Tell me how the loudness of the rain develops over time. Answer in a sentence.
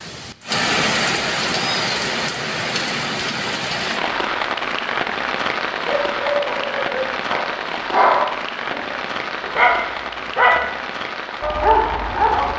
The volume of the rain goes down.